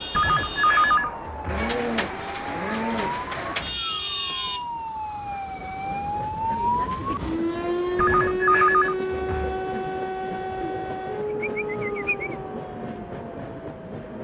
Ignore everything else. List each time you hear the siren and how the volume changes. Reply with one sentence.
You can hear the siren from 0.0 to 14.1 s, getting louder then quieter.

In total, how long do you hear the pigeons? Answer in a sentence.
You can hear the pigeons for 4 seconds altogether.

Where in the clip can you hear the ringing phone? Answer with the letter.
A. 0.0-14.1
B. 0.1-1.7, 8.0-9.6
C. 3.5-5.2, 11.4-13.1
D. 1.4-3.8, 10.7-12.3
B.